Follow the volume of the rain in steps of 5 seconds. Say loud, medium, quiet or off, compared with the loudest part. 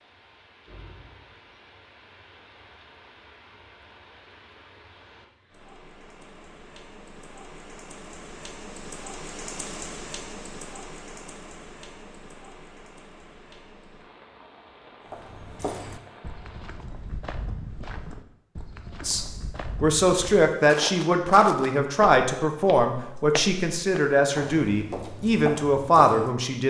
medium, loud, loud, medium, off, off.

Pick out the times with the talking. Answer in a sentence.
You can hear the talking from 19.0 to 26.6 s.